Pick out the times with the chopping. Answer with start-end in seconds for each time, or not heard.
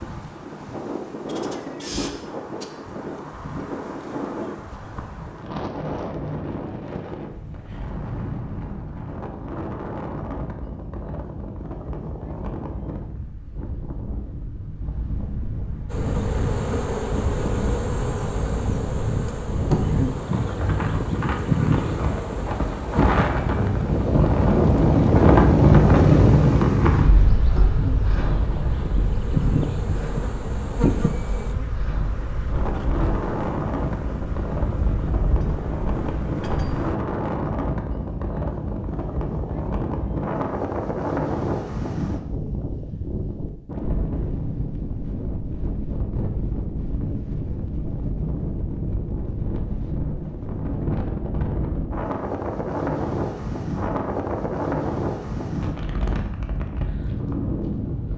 not heard.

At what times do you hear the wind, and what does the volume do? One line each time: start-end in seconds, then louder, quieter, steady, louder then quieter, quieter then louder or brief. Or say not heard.
0.0-58.1 louder then quieter.